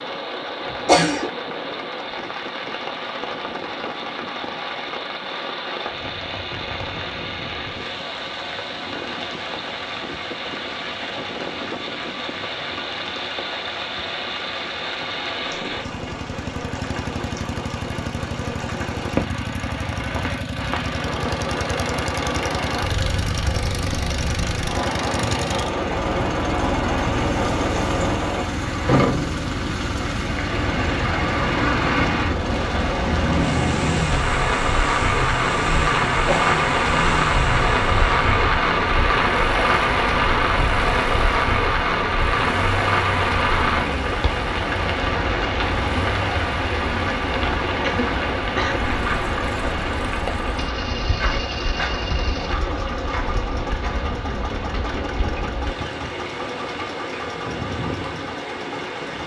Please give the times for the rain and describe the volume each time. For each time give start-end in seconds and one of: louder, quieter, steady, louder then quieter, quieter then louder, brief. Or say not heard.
0.0-59.2 louder then quieter.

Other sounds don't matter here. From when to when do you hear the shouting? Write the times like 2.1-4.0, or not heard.
not heard.